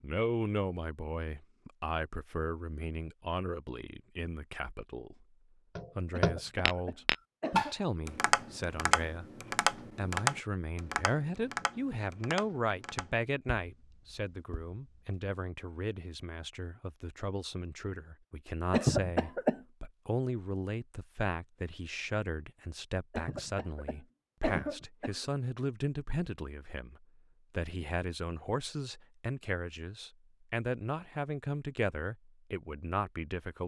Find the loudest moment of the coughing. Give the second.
19 s.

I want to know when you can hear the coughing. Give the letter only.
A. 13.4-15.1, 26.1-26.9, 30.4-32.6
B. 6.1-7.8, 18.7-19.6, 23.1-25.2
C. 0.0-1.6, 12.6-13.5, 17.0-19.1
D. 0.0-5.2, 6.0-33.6
B.